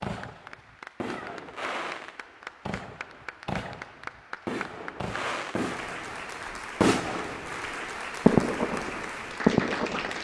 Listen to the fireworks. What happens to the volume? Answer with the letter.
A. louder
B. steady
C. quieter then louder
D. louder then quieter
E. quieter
A.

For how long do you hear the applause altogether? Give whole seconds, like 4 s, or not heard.
10 s.